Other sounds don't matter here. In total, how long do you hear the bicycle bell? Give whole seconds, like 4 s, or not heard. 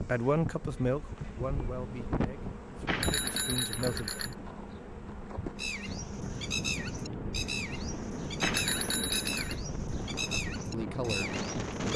3 s.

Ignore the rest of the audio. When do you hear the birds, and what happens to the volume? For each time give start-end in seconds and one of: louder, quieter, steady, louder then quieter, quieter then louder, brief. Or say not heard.
5.5-11.9 steady.